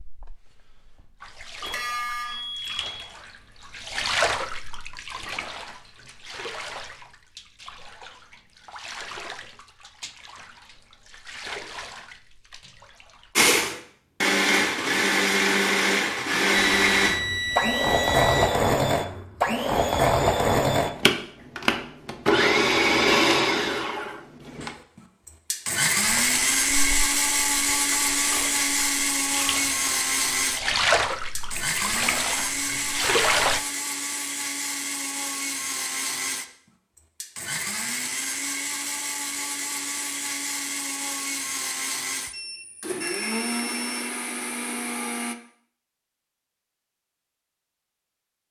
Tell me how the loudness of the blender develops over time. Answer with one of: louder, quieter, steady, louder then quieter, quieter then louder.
quieter.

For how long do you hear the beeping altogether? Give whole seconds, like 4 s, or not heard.
5 s.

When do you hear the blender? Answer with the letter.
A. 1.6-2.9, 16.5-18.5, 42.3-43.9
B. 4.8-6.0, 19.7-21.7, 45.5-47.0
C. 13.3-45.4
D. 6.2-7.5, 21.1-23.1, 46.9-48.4
C.